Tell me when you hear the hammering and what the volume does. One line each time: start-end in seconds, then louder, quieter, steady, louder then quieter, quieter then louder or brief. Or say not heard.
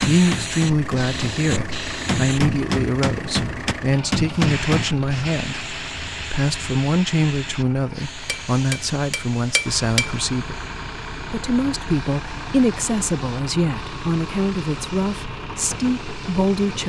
0.0-4.8 louder
8.2-10.2 brief.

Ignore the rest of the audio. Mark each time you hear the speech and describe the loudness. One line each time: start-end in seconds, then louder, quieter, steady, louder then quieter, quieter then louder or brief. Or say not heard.
0.0-16.8 steady.